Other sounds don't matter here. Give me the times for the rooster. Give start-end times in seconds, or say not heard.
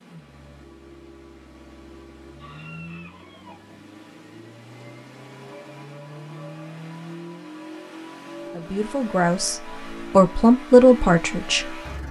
2.4-3.8.